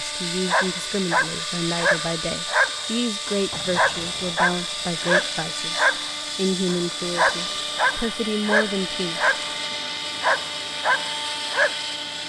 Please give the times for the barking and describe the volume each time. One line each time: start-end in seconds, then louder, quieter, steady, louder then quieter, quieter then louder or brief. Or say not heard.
0.5-9.6 steady
10.2-11.8 brief.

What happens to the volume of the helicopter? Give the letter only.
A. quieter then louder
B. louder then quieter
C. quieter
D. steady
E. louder
D.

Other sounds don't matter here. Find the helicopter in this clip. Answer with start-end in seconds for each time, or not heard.
0.0-12.2.